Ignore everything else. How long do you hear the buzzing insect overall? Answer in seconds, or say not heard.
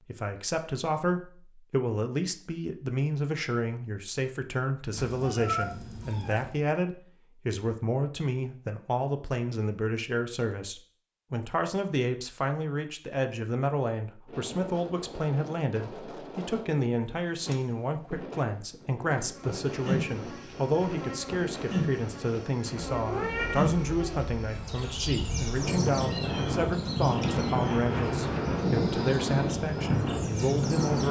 12 s.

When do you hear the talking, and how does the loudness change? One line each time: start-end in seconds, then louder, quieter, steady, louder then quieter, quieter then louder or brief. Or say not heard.
0.1-31.0 steady.